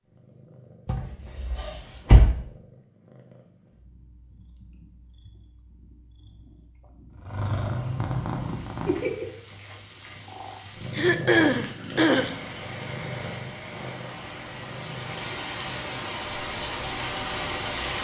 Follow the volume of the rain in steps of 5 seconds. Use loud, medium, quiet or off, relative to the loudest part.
off, quiet, medium, loud.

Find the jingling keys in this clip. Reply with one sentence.
You can hear the jingling keys from 0.8 to 2.4 s and from 11.3 to 12.6 s.